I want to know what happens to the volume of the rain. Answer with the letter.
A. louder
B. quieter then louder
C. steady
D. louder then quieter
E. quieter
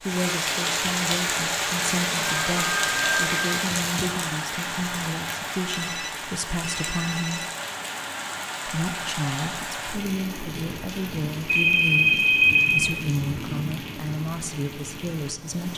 E.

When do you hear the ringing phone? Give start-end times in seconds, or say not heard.
2.2-3.6, 5.7-7.5, 11.4-12.9.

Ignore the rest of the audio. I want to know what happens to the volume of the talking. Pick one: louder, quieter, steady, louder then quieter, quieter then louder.
steady.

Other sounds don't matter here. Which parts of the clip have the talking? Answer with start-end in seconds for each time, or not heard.
0.0-7.5, 8.7-15.7.